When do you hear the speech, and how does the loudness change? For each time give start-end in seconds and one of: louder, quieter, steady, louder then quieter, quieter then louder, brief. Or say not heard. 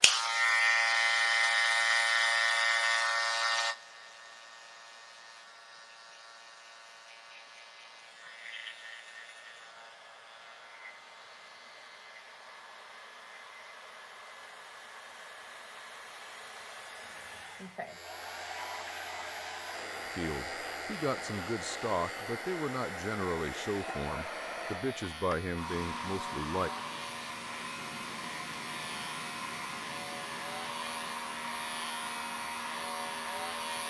20.1-26.7 steady.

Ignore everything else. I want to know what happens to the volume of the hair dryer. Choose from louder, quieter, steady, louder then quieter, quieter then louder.
louder.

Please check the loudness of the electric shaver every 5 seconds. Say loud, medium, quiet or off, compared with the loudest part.
loud, quiet, quiet, quiet, quiet, quiet, quiet.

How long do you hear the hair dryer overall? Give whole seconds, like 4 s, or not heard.
34 s.